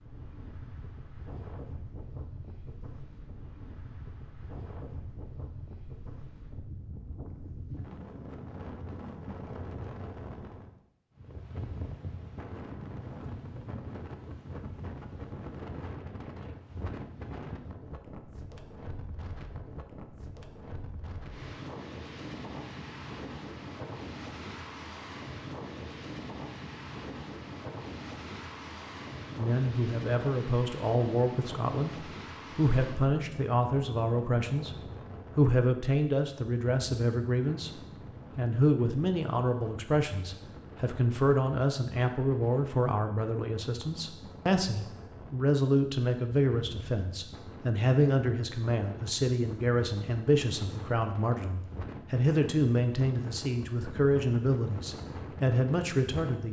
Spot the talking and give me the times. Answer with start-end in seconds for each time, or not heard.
29.4-34.8, 35.4-37.8, 38.4-56.4.